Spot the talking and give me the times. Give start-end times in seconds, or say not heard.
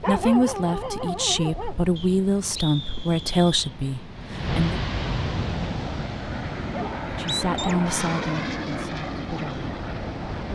0.0-4.8, 7.0-9.7.